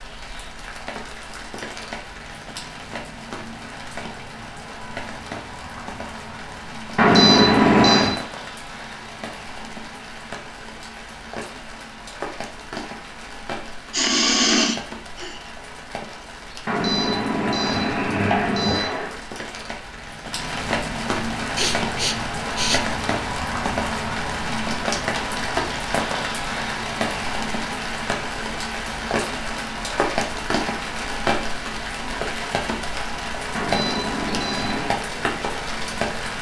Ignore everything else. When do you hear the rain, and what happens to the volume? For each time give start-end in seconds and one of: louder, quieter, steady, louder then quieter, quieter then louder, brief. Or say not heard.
0.0-36.3 louder.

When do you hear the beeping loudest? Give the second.
7 s.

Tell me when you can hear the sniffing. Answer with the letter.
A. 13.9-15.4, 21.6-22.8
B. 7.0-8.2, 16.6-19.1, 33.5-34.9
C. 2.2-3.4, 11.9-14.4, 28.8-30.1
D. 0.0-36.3
A.